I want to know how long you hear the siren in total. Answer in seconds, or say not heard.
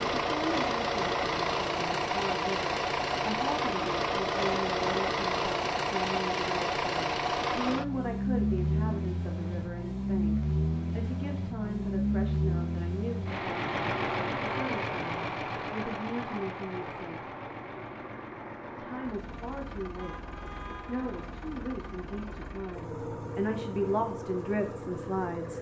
not heard.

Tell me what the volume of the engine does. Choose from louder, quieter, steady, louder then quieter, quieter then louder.
quieter.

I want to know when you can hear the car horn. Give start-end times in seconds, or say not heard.
19.9-21.2.